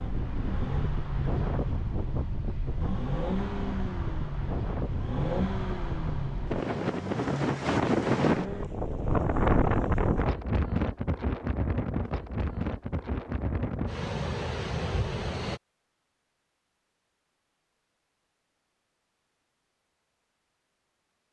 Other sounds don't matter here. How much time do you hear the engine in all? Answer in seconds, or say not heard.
9 s.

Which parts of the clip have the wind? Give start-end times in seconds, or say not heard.
0.0-15.6.